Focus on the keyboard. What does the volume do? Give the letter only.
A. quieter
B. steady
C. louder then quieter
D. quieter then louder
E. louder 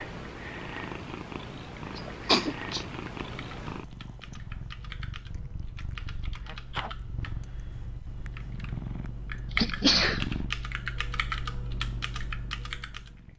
E.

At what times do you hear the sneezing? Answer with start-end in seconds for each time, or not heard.
1.9-2.9, 6.4-7.0, 9.5-10.2.